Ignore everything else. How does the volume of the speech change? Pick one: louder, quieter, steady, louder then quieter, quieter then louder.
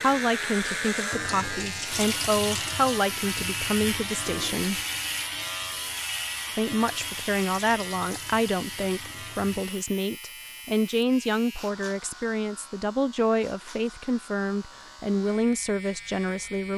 steady.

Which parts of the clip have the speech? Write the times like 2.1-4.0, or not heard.
0.0-4.8, 6.5-16.7.